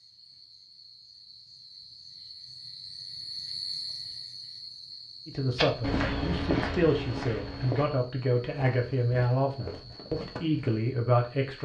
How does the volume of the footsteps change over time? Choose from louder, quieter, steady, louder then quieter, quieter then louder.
quieter.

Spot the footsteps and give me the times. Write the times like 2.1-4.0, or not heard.
5.5-10.8.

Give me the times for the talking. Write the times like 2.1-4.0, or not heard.
5.2-11.5.